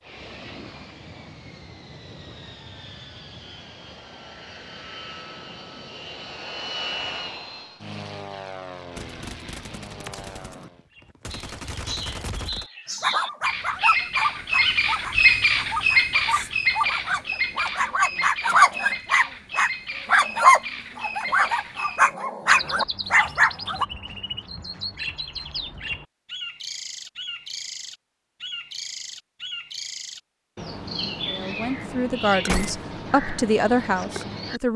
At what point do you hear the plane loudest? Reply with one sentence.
The loudest moment of the plane is at 7 seconds.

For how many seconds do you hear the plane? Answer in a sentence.
You can hear the plane for 11 seconds altogether.